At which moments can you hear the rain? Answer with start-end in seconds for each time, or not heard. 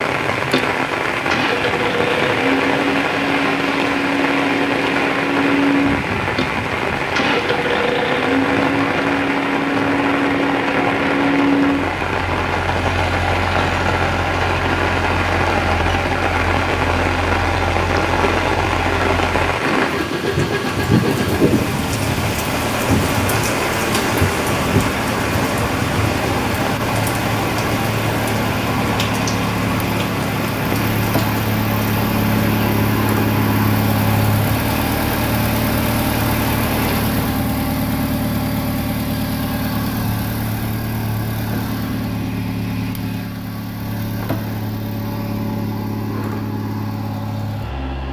0.0-37.5.